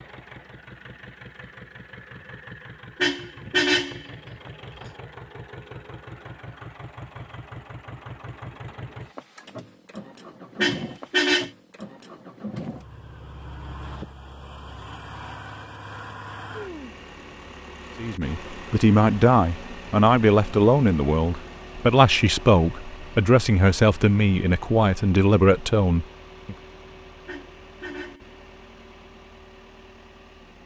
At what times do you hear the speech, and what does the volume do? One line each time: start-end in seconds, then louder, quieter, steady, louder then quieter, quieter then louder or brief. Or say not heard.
18.0-26.6 steady.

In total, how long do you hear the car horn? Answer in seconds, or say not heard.
3 s.